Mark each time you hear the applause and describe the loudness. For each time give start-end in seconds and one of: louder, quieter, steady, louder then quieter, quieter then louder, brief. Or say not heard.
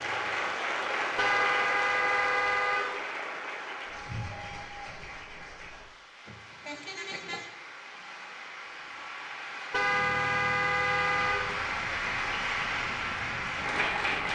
0.0-14.3 quieter then louder.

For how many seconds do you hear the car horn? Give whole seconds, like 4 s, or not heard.
5 s.